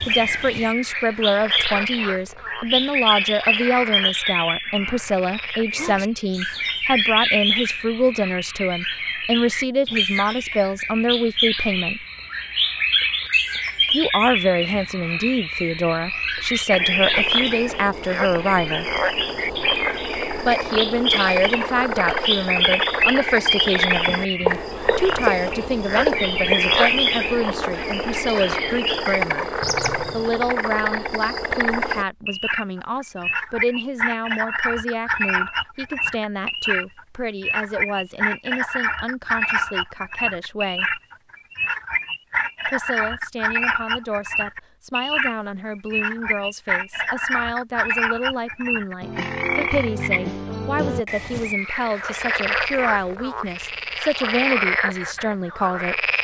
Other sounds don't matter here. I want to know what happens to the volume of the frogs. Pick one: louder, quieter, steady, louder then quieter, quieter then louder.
louder.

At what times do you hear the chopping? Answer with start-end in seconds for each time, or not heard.
24.1-26.6.